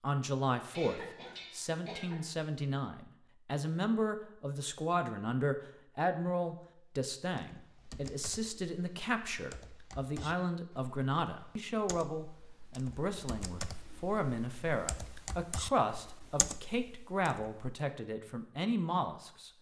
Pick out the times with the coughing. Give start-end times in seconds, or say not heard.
0.7-2.3.